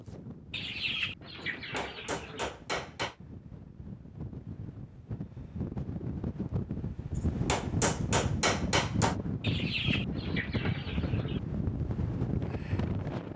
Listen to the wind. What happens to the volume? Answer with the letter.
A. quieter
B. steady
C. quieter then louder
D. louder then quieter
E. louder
E.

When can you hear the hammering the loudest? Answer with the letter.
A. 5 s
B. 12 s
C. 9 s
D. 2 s
C.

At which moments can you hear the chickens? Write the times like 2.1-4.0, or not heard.
0.5-2.5, 9.4-11.4.